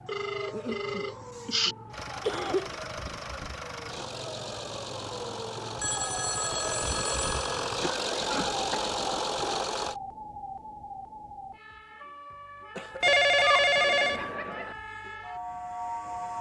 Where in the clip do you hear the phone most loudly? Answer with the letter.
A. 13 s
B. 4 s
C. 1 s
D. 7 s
A.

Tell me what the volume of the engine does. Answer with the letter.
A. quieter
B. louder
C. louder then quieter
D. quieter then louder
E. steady
B.